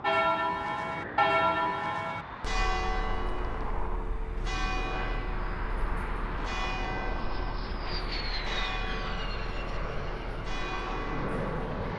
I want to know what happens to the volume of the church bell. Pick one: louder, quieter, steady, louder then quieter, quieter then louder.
quieter.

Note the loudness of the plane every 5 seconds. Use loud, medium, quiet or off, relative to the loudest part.
medium, loud, loud.